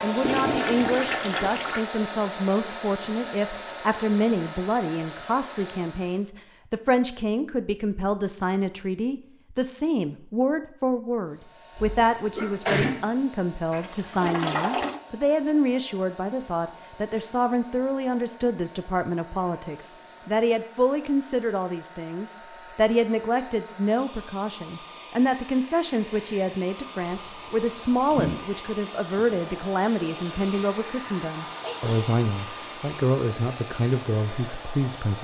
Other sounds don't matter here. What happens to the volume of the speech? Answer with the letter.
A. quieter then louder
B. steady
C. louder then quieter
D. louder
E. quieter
B.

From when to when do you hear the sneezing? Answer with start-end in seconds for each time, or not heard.
11.8-12.9, 31.6-32.6.